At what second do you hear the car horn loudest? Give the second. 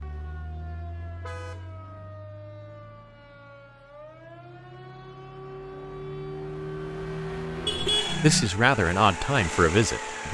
8 s.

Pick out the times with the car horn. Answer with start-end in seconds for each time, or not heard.
1.1-1.8, 7.7-8.5.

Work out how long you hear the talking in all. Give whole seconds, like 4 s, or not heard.
2 s.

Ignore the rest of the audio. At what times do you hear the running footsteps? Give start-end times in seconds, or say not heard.
not heard.